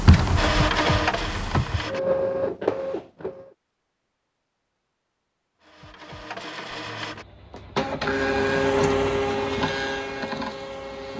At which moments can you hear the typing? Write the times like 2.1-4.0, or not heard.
0.0-1.8.